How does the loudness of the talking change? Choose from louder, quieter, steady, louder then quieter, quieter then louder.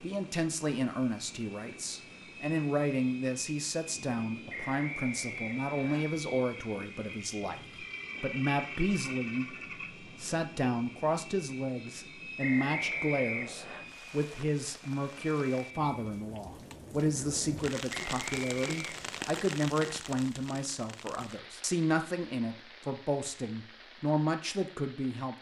steady.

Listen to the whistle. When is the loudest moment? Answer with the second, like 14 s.
13 s.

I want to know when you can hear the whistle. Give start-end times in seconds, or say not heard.
4.5-6.0, 12.4-13.8, 17.9-19.1.